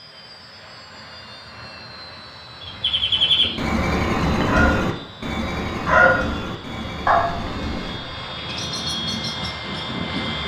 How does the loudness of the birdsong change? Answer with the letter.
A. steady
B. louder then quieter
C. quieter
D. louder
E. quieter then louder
C.